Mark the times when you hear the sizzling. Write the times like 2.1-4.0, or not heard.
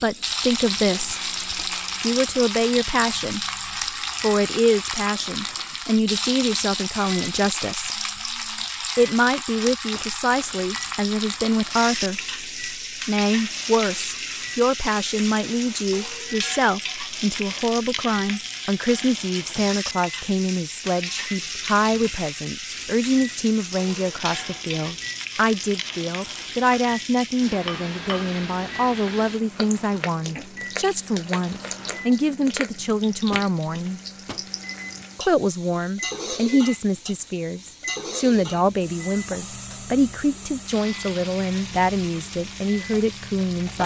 0.0-43.8.